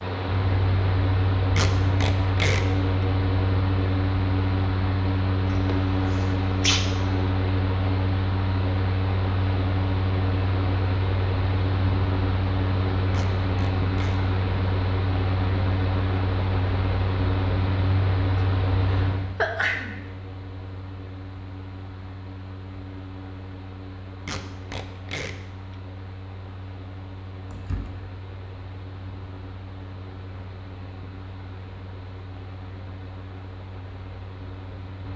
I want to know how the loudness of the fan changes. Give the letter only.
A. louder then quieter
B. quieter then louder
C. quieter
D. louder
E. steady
C.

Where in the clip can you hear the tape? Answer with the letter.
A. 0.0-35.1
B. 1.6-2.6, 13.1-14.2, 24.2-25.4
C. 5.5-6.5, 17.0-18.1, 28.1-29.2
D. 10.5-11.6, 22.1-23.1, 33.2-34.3
B.